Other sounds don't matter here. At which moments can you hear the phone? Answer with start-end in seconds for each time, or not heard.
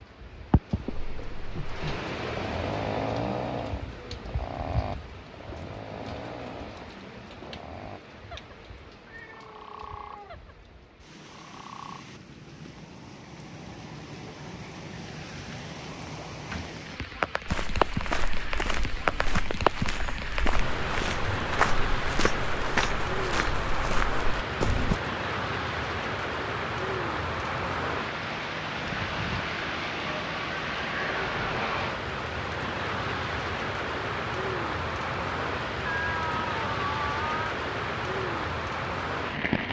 not heard.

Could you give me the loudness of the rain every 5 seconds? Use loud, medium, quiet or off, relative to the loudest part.
medium, quiet, quiet, loud, loud, loud, loud, loud.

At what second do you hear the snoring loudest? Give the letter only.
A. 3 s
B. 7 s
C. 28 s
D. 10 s
A.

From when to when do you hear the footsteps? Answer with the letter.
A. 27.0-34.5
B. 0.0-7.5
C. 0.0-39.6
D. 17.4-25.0
D.